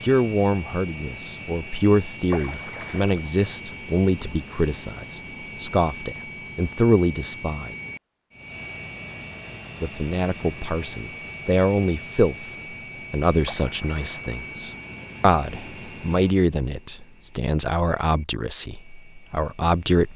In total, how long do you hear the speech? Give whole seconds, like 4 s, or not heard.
18 s.